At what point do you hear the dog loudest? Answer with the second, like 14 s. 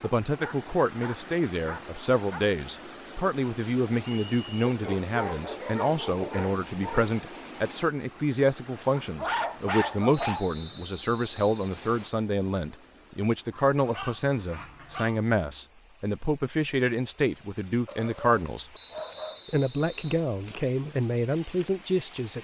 9 s.